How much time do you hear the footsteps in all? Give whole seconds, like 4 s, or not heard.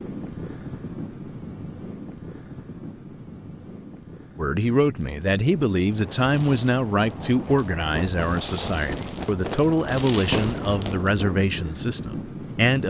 not heard.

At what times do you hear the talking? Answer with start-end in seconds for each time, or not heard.
4.3-12.8.